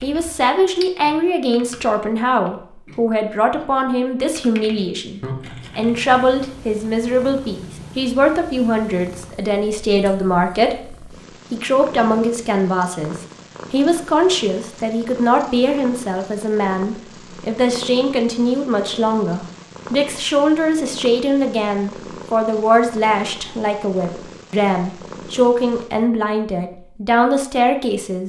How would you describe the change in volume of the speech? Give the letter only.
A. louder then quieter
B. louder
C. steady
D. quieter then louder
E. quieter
C.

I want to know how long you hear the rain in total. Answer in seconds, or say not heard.
not heard.